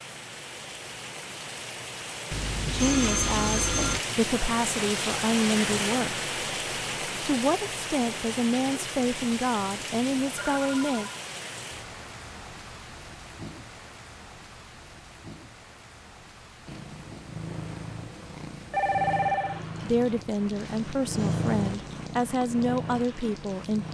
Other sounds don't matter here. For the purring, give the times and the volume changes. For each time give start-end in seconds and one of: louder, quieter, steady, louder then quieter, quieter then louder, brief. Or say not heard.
16.6-23.9 louder then quieter.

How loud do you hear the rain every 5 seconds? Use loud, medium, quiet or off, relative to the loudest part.
loud, loud, medium, quiet, quiet.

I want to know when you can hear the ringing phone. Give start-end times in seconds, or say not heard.
2.3-4.0, 10.3-11.2, 18.7-19.6.